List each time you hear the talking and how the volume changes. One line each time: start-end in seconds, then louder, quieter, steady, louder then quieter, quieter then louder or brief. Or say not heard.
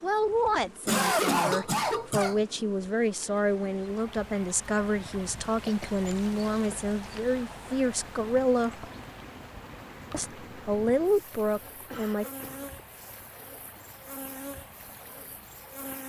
0.0-8.8 steady
10.1-12.2 brief.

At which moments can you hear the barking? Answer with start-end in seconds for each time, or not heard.
not heard.